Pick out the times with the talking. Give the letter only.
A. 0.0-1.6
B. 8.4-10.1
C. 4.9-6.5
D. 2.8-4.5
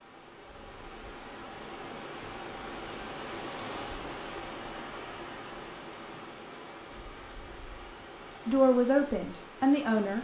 B.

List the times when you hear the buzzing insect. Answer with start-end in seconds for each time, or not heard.
not heard.